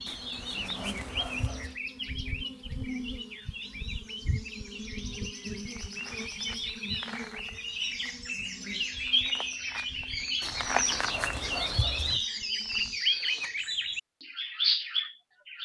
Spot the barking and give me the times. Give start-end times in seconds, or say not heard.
0.1-1.8, 10.4-12.2.